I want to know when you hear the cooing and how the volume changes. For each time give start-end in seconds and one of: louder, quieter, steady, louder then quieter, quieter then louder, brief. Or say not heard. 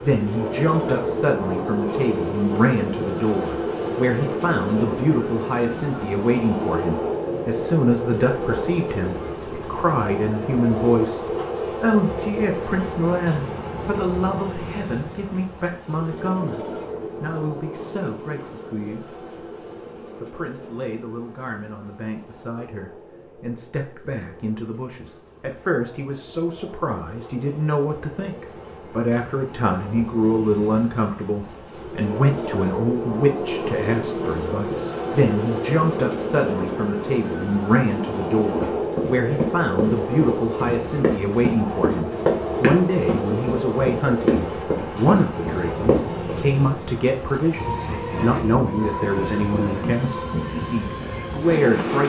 not heard.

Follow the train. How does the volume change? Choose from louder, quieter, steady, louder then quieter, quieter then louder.
quieter then louder.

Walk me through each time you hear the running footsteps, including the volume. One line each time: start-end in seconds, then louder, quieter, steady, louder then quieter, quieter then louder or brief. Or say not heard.
38.5-46.4 steady.